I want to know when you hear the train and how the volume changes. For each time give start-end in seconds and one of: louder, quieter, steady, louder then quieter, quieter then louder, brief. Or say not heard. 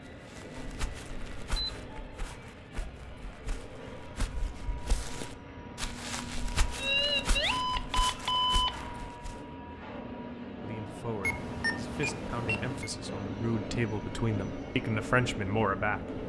0.0-16.2 louder.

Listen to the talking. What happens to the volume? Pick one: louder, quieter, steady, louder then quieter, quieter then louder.
louder.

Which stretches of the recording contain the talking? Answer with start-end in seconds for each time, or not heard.
10.6-16.2.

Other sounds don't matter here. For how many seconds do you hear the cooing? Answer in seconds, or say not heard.
not heard.